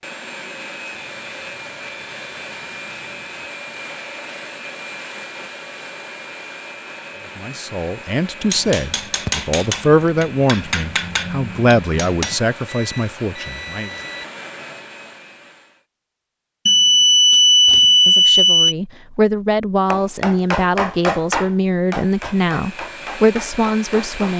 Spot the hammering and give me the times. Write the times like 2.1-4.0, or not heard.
8.4-12.4, 19.9-24.3.